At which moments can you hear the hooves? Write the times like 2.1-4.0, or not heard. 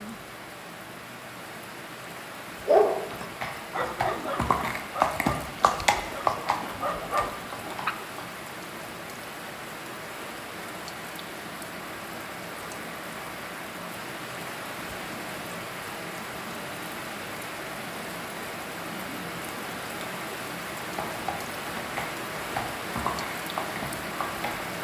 2.9-8.3, 20.9-24.4.